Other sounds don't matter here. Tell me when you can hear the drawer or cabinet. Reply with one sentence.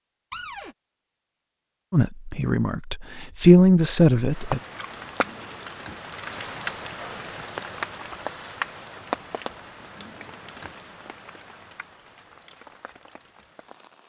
The drawer or cabinet can be heard from 0.3 to 0.8 s, from 5.2 to 6.0 s and from 9.8 to 10.8 s.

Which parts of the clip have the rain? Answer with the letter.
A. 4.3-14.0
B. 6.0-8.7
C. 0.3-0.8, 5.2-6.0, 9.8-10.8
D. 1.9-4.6
A.